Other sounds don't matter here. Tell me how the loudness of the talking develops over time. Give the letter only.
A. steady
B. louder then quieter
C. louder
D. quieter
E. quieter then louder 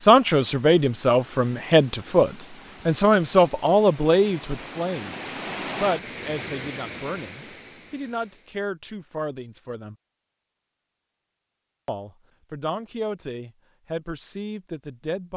D.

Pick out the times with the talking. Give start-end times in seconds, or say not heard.
0.0-9.9, 11.8-15.3.